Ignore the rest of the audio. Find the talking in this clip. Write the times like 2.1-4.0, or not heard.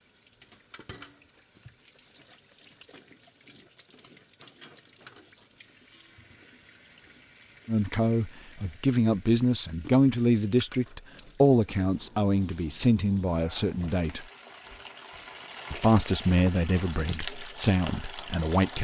7.7-14.2, 15.7-18.7.